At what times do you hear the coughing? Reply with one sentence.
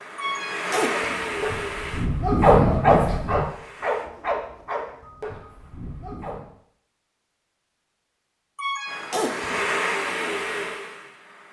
The coughing can be heard from 0.1 to 1.2 s and from 8.6 to 9.6 s.